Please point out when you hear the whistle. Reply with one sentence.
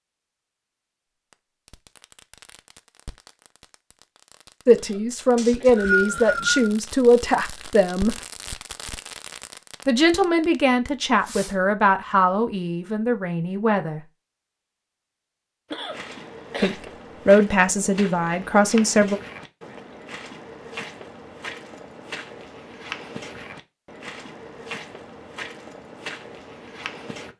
You can hear the whistle from 5.3 to 6.8 s.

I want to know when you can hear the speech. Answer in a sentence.
The speech can be heard from 4.7 to 8.2 s, from 9.8 to 14.1 s and from 16.6 to 19.2 s.